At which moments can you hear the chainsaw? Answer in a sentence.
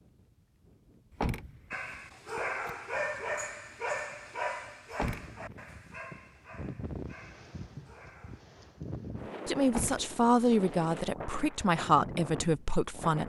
The chainsaw can't be heard in this clip.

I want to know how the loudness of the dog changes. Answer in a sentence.
The loudness of the dog goes down.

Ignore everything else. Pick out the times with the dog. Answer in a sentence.
The dog can be heard from 1.7 to 8.4 s.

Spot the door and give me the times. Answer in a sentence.
The door can be heard from 1.2 to 2.7 s, from 4.9 to 5.8 s and from 9.7 to 10.2 s.